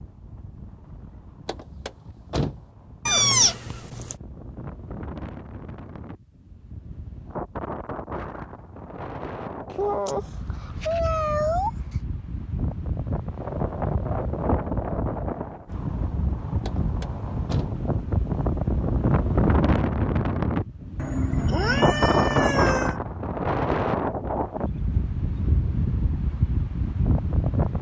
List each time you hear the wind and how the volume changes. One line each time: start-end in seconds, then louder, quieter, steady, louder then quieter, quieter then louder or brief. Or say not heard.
0.0-27.7 louder.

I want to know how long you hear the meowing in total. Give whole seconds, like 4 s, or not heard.
5 s.